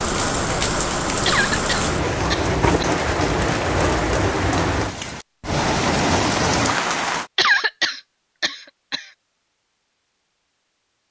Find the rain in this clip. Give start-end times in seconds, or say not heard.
0.0-7.3.